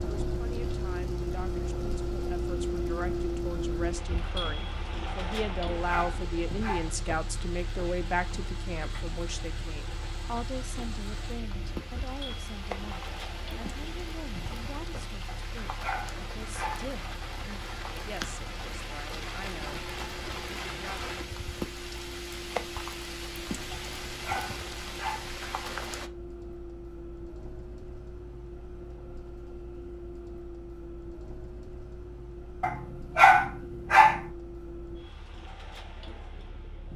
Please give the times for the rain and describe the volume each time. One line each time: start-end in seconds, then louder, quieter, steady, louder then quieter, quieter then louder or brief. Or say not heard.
0.0-26.1 louder.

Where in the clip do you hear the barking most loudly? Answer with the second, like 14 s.
33 s.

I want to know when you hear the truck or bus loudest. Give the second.
3 s.